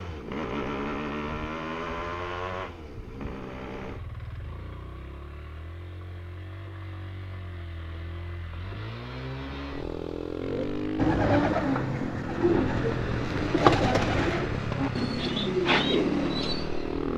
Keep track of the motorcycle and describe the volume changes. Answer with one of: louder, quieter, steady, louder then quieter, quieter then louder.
quieter then louder.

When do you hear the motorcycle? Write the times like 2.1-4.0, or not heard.
0.0-17.1.